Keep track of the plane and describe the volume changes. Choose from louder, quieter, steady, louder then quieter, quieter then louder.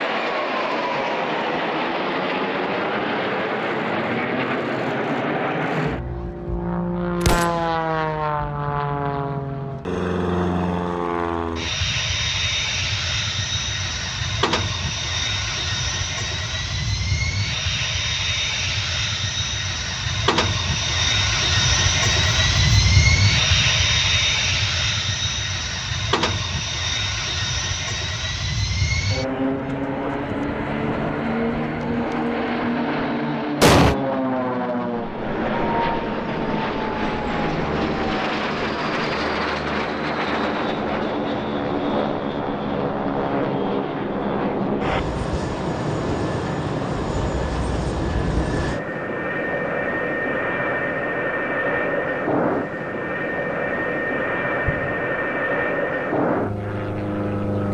steady.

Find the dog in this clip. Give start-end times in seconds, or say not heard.
not heard.